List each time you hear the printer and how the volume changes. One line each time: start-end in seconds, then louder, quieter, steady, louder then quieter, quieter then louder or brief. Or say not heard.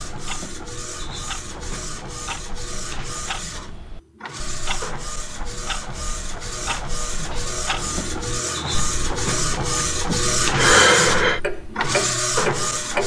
0.0-13.0 louder.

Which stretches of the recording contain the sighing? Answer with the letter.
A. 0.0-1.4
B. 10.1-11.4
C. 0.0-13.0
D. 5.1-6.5
B.